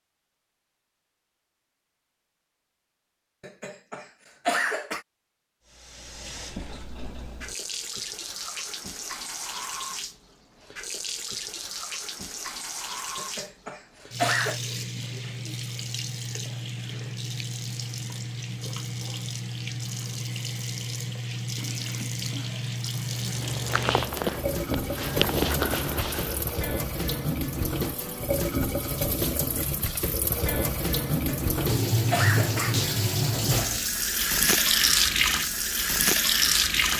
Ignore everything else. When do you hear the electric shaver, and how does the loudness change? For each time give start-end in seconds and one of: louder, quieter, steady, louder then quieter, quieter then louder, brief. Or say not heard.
not heard.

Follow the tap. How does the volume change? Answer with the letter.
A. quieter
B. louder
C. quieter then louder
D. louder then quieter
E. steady
B.